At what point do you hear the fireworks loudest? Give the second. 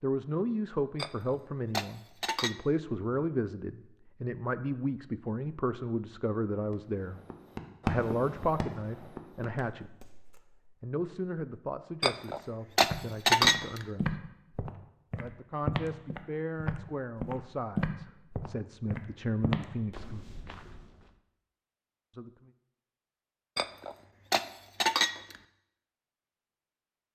8 s.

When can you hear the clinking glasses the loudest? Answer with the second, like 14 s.
13 s.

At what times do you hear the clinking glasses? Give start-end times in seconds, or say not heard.
0.9-2.5, 12.0-13.8, 23.6-25.4.